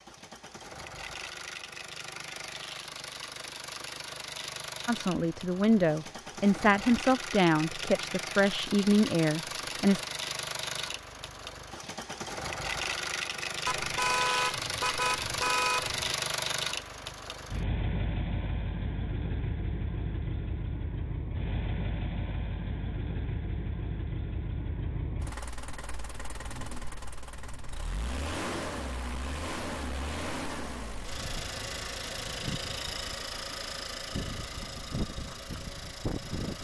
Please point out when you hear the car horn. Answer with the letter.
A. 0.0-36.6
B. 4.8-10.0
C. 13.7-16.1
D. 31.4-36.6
C.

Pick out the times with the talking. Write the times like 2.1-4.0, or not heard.
4.8-10.0.